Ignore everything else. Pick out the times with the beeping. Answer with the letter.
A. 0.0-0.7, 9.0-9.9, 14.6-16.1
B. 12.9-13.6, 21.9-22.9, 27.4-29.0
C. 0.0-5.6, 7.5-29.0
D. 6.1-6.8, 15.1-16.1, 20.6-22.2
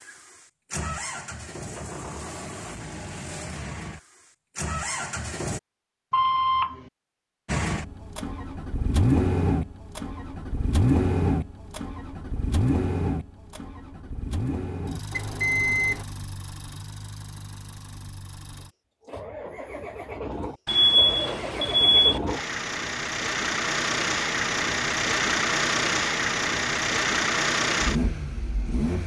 D.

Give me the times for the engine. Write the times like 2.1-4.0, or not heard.
0.0-5.6, 7.5-29.0.